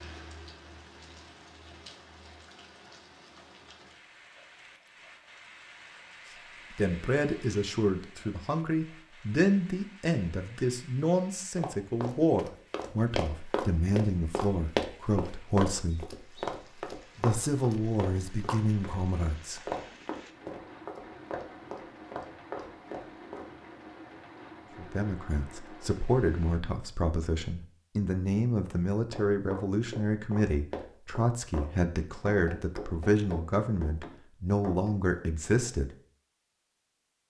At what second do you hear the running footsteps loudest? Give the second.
15 s.